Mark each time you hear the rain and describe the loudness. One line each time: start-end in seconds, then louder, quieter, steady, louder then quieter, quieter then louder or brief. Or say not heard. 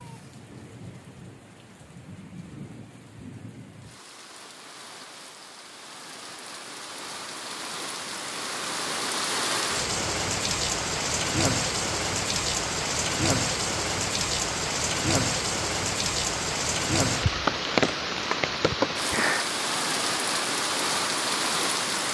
0.0-22.0 louder.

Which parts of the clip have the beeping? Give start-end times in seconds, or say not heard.
not heard.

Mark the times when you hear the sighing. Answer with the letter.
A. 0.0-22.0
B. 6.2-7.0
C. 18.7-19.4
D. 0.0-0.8
C.